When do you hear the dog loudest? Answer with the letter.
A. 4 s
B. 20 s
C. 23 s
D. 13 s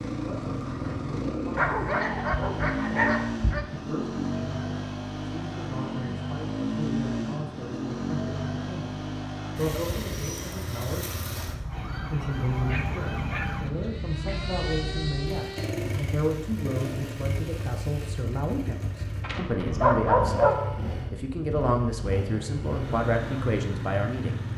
B.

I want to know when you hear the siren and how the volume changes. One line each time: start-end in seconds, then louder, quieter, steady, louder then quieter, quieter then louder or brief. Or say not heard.
11.7-15.8 steady.